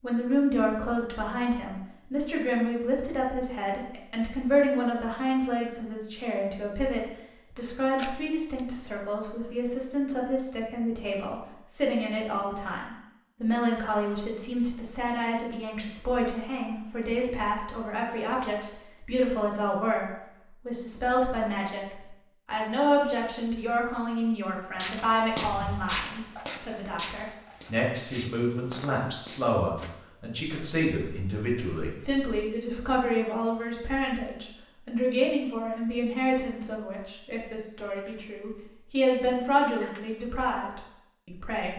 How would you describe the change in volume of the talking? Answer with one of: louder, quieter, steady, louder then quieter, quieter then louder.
steady.